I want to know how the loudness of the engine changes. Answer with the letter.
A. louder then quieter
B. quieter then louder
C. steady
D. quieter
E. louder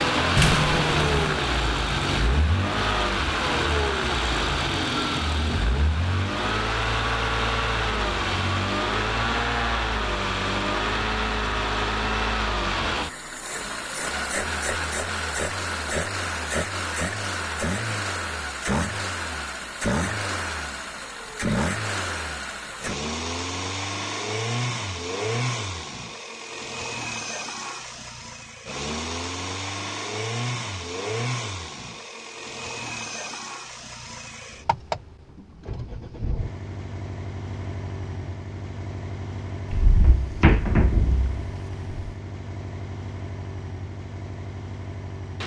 D.